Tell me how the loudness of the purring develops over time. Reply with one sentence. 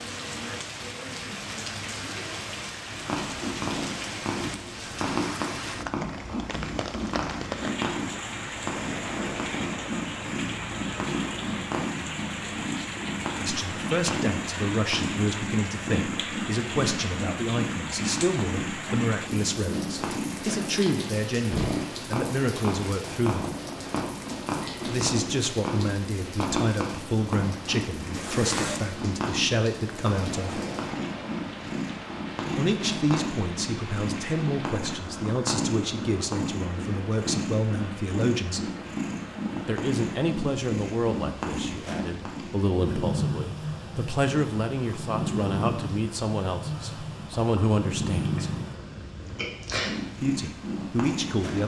The volume of the purring stays about the same.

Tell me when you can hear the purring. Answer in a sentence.
You can hear the purring from 2.9 to 51.6 s.